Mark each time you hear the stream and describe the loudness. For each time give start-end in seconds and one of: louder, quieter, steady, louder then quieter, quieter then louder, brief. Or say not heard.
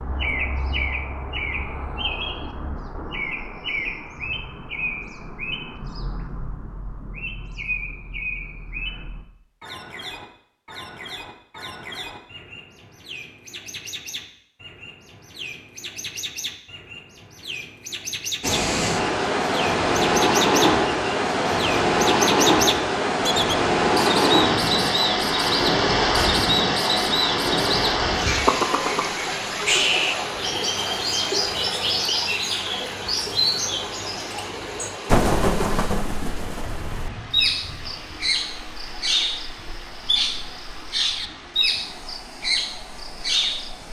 18.4-43.8 quieter.